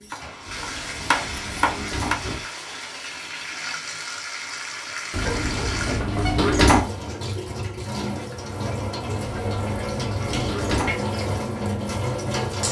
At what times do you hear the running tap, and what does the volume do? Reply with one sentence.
You can hear the running tap from 0.0 to 12.6 s, getting louder.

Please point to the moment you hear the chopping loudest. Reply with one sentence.
The loudest moment of the chopping is at 1 second.